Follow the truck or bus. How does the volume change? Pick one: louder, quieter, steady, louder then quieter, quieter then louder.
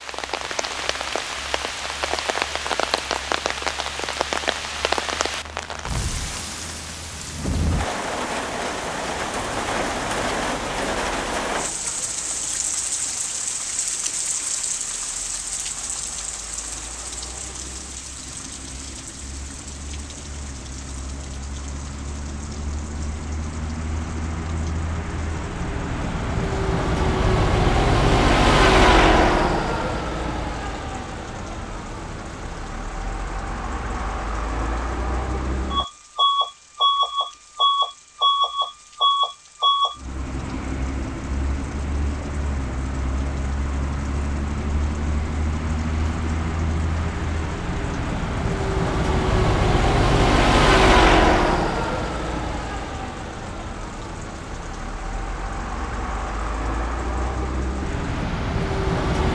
louder.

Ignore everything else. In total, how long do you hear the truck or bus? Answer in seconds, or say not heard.
59 s.